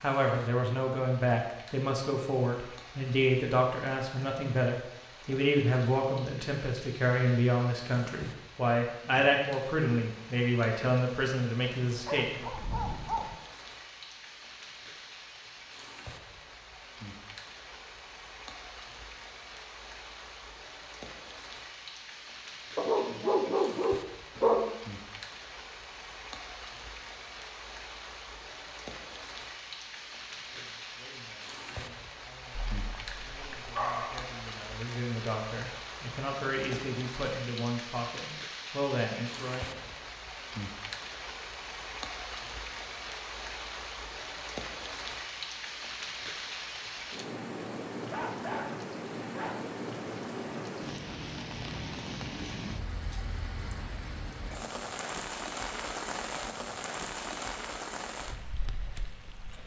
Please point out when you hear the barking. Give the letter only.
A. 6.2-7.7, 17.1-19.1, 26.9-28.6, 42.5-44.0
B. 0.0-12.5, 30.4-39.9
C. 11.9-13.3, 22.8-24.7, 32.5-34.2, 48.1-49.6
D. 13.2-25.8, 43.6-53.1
C.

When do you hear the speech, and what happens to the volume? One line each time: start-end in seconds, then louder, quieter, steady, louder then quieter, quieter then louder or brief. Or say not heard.
0.0-12.5 steady
30.4-39.9 louder.